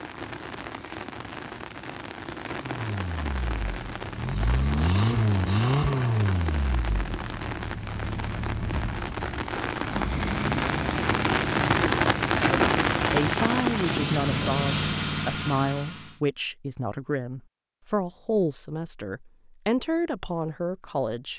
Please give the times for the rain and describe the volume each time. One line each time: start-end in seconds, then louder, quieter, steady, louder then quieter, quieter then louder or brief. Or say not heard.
0.0-15.1 louder.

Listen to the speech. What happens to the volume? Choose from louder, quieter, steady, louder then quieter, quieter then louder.
steady.